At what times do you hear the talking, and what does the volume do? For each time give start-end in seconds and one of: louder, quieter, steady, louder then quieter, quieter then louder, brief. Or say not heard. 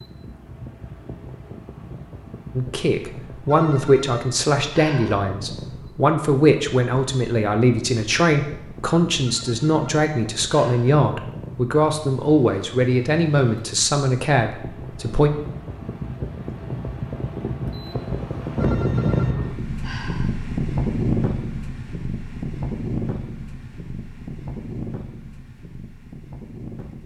2.5-15.3 steady.